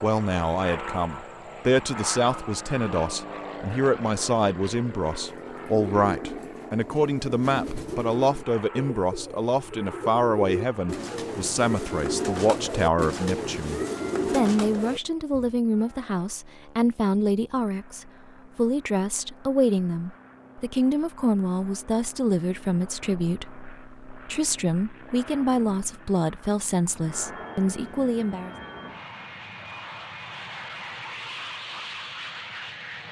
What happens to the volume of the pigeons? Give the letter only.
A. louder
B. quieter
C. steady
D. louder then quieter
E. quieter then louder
A.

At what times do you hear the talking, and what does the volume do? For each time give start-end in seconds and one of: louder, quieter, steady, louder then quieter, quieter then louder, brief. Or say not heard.
0.0-28.6 steady.